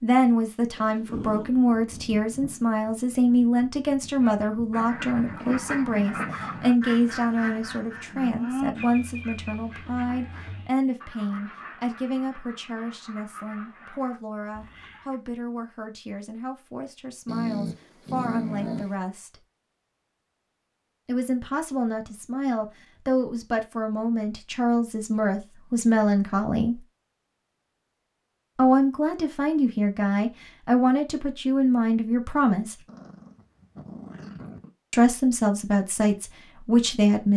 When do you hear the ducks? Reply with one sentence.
The ducks can be heard from 4.2 to 15.2 s.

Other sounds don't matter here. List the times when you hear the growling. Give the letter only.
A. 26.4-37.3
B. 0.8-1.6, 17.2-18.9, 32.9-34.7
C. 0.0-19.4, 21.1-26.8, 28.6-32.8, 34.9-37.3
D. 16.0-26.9
B.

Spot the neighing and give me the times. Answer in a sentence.
You can't hear the neighing here.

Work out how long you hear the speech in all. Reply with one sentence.
The speech can be heard for 32 seconds in total.